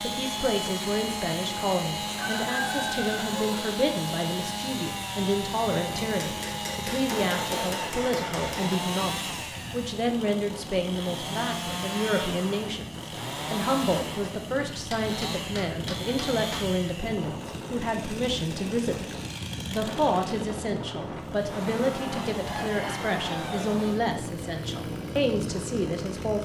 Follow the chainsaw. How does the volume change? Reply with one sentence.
The volume of the chainsaw goes down.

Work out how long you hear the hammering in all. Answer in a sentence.
You can hear the hammering for 5 seconds altogether.